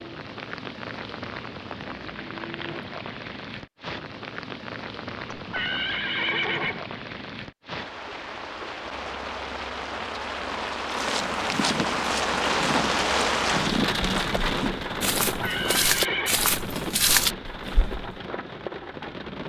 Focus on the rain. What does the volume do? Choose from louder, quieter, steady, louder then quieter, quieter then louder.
louder then quieter.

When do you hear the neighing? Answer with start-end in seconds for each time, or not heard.
5.3-6.8, 15.3-16.4.